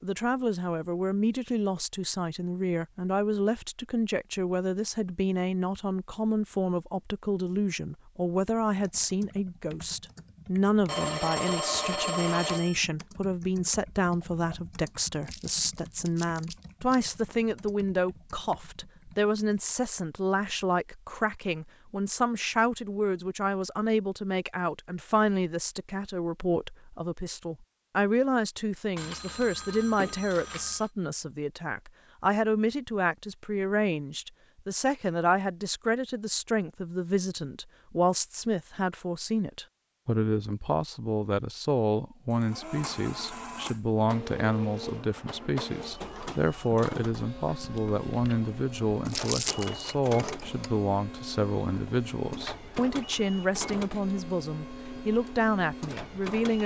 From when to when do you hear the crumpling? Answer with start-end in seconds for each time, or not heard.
15.2-17.1, 49.0-49.7.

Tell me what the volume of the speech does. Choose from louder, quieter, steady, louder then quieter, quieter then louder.
steady.